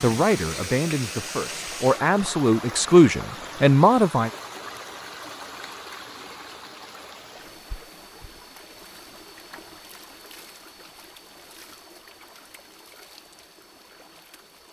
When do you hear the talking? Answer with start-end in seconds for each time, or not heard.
0.0-4.3.